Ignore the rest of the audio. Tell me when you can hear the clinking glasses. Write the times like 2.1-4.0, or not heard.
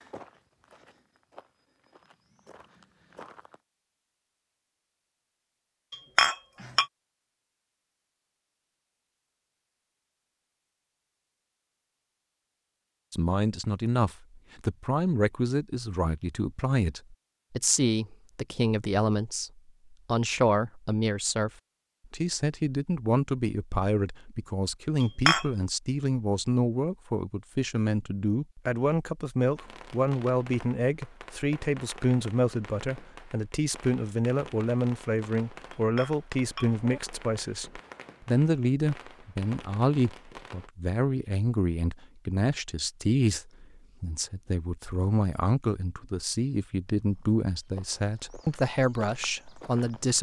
5.9-6.8, 25.0-25.4, 35.7-37.0.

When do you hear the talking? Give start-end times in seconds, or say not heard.
13.1-21.5, 22.1-50.1.